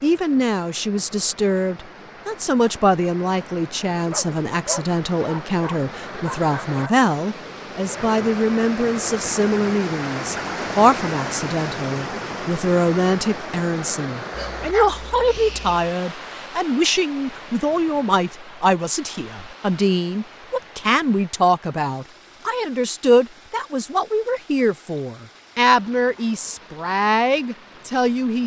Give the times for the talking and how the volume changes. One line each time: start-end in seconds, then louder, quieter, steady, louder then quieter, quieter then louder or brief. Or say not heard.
0.0-28.4 steady.